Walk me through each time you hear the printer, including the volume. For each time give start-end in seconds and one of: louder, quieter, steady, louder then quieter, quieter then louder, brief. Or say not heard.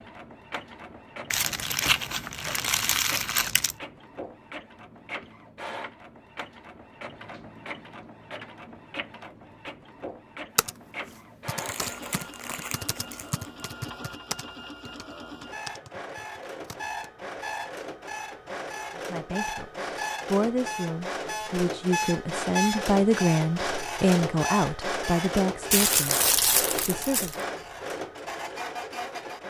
0.0-29.4 louder.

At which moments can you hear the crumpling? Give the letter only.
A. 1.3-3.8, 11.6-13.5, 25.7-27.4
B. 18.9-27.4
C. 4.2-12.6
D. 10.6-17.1
A.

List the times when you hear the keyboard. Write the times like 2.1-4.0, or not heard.
10.6-17.1.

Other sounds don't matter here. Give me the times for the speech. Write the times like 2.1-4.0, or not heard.
18.9-27.4.